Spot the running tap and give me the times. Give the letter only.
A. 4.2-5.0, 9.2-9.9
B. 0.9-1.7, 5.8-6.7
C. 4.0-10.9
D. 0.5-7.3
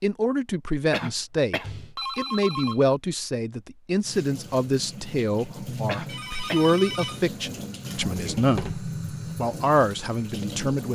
C.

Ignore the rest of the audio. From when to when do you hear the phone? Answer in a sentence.
The phone can be heard from 1.6 to 2.8 s and from 6.0 to 7.2 s.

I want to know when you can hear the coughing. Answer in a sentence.
You can hear the coughing from 0.9 to 1.7 s and from 5.8 to 6.7 s.